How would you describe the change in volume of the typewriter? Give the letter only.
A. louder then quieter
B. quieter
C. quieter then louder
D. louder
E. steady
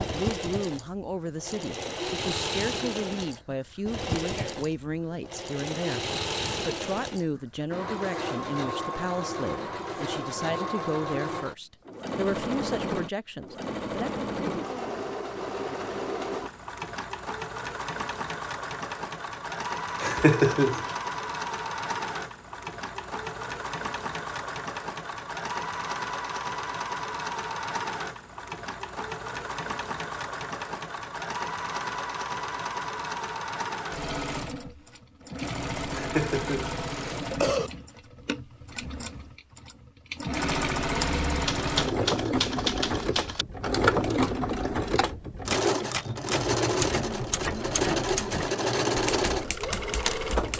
B.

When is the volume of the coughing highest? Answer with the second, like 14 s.
20 s.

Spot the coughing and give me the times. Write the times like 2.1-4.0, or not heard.
20.0-20.9, 35.9-37.7.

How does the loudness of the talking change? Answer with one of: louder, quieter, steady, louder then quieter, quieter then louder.
steady.